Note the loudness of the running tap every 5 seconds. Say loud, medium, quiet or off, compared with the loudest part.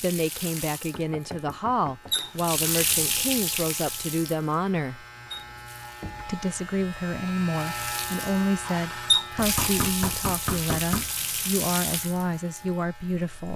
loud, loud, medium.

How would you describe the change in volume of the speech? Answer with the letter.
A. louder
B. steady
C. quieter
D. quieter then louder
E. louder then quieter
B.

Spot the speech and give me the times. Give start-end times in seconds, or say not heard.
0.0-5.0, 6.2-13.5.